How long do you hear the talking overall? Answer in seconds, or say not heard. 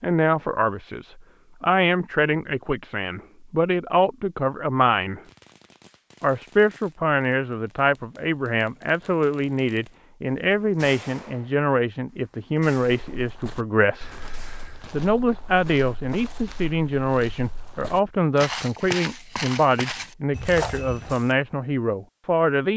21 s.